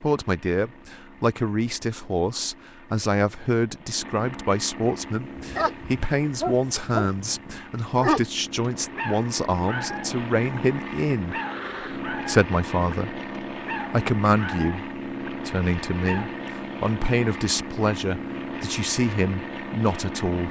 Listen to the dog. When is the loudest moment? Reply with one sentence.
The volume of the dog peaks at 8 seconds.